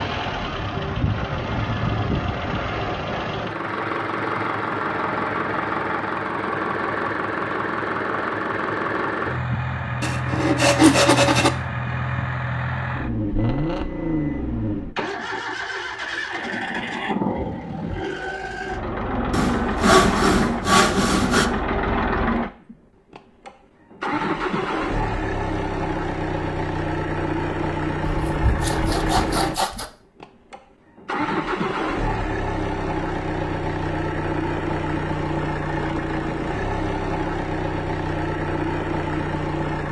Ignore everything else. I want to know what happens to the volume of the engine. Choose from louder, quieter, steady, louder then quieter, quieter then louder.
steady.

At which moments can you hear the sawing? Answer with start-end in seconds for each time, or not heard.
10.0-11.5, 19.3-21.5, 28.1-29.9.